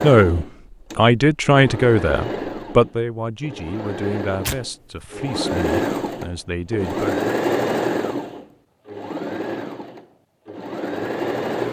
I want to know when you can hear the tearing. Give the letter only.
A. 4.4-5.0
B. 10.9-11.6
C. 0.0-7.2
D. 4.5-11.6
A.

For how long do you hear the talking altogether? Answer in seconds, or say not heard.
7 s.